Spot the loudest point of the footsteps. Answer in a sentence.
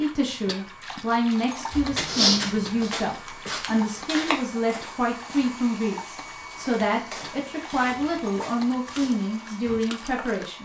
The loudest moment of the footsteps is at 2 seconds.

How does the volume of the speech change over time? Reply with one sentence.
The volume of the speech stays about the same.